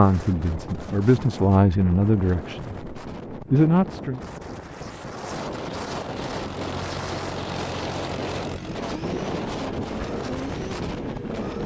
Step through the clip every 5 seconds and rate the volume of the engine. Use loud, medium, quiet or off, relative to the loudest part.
off, loud, loud.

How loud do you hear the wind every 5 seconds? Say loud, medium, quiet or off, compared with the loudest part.
medium, loud, loud.